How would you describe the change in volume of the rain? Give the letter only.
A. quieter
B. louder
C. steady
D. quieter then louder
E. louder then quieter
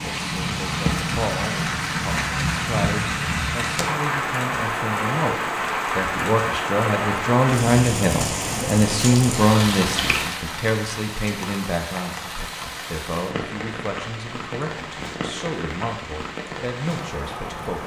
A.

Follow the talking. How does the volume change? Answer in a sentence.
The loudness of the talking goes up, then down.